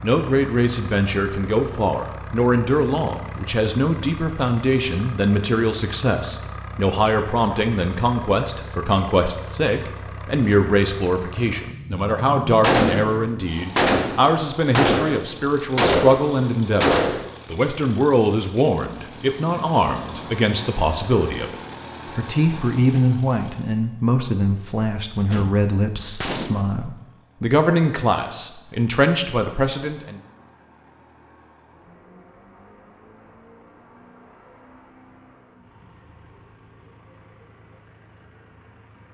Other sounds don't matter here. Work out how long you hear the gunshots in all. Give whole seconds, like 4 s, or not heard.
6 s.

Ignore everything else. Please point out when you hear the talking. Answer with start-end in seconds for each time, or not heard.
0.0-21.6, 22.1-30.2.